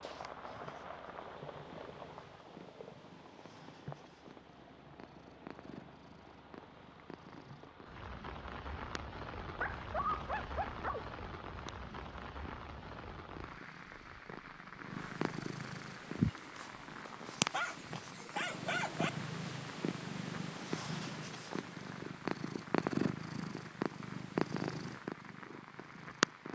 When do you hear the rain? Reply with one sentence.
The rain can be heard from 0.0 to 26.5 s.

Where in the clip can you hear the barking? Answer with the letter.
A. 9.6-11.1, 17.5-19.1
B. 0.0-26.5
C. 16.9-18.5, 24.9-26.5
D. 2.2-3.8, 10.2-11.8
A.